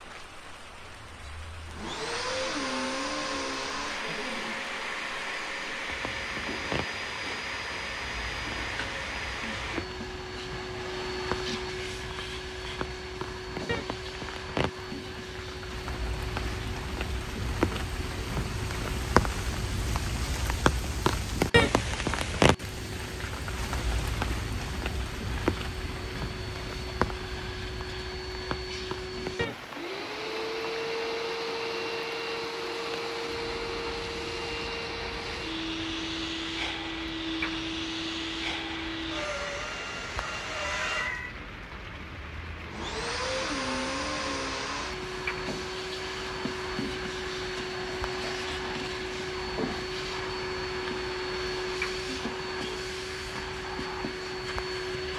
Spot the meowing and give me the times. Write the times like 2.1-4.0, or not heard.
40.6-41.4.